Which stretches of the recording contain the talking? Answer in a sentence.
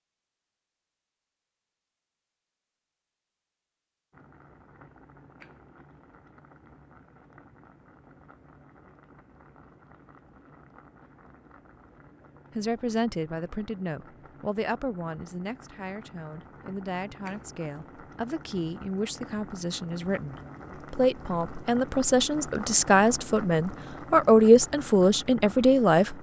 The talking can be heard from 12.6 to 26.1 s.